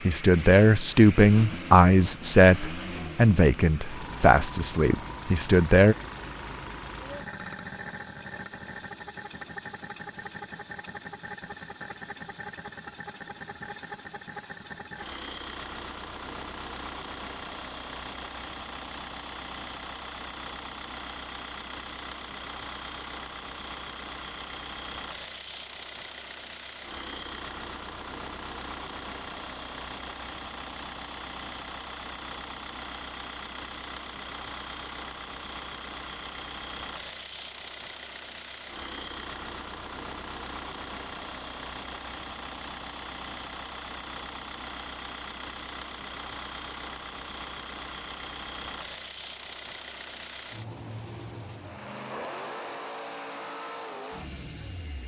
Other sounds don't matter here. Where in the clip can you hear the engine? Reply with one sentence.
The engine can be heard from 0.0 to 55.0 s.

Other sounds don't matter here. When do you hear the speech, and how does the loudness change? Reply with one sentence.
You can hear the speech from 0.0 to 6.0 s, getting quieter.